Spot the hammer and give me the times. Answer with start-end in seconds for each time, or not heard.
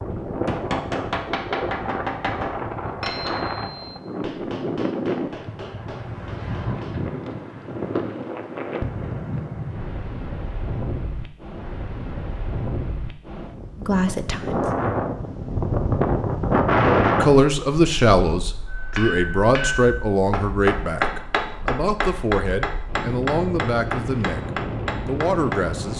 0.5-7.0, 18.6-25.6.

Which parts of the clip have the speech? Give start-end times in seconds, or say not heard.
13.8-14.6, 17.2-25.9.